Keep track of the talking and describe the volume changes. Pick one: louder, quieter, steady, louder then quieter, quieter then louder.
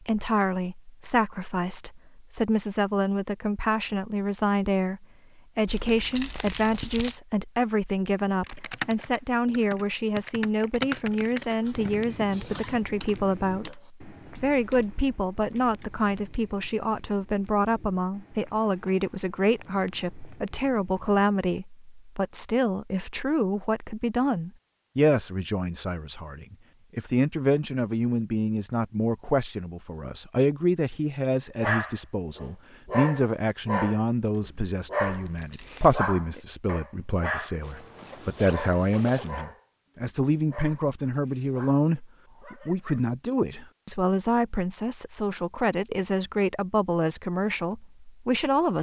steady.